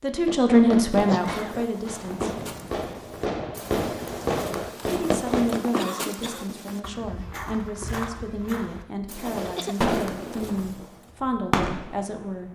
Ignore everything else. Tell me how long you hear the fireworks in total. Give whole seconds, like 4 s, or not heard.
9 s.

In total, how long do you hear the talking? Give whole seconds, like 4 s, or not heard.
10 s.